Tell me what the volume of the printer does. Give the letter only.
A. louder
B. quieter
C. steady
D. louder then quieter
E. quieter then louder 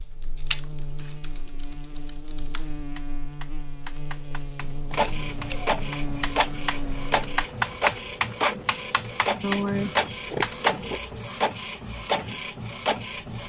C.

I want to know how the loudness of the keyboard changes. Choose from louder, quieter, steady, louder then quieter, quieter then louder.
louder.